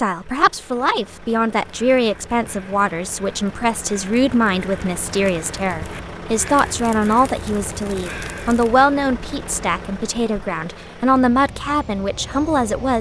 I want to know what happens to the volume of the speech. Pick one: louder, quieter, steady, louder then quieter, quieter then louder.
steady.